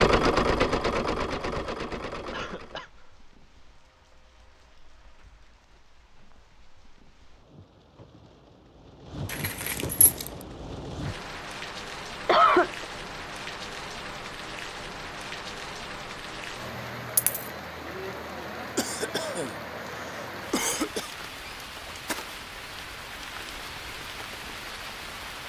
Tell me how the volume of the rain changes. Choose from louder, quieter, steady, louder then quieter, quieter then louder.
louder.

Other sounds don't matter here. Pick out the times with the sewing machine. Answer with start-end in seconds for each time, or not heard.
0.0-2.9.